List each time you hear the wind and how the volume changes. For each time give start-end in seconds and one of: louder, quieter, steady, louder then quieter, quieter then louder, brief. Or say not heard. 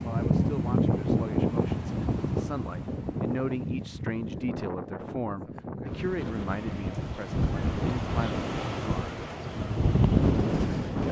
0.0-11.0 quieter then louder.